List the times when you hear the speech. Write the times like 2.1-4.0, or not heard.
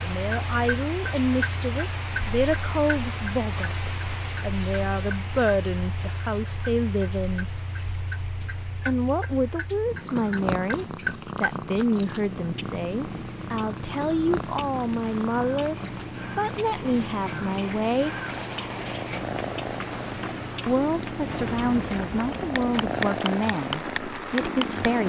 0.0-7.5, 8.8-15.8, 16.4-18.1, 20.6-25.0.